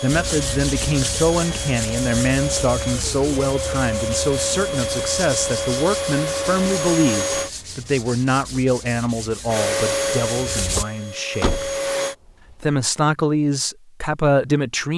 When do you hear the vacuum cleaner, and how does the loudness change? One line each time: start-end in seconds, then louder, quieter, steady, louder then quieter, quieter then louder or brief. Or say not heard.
0.0-7.5 louder
9.4-12.2 brief.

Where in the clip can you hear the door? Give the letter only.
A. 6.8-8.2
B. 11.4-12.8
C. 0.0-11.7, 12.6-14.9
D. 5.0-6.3
B.